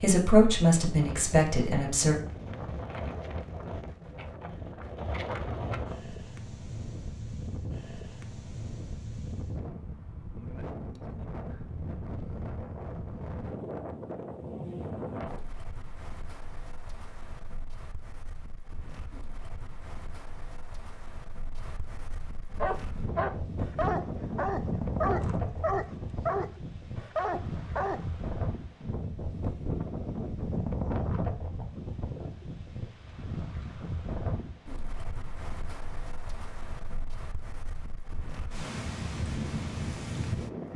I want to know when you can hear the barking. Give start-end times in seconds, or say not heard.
22.5-28.1.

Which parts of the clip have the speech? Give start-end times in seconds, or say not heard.
0.0-2.1.